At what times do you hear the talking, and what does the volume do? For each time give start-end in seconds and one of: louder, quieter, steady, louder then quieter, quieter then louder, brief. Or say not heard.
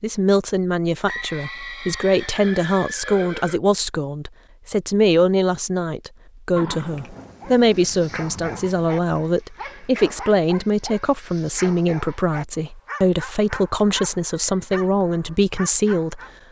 0.0-16.2 steady.